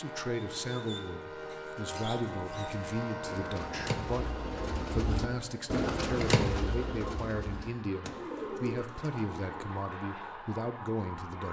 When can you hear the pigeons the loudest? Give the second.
6 s.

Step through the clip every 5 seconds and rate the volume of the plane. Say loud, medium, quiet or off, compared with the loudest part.
loud, medium, loud.